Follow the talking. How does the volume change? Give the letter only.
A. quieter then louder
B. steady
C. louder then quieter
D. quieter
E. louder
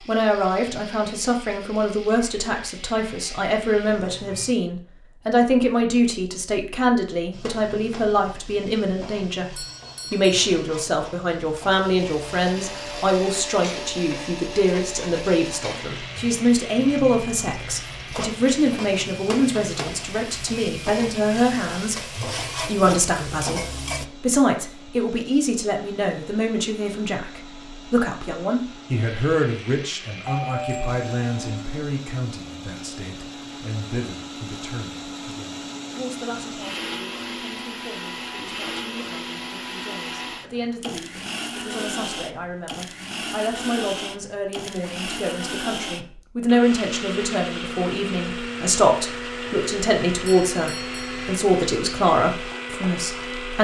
A.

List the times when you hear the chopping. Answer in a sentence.
The chopping can't be heard in this clip.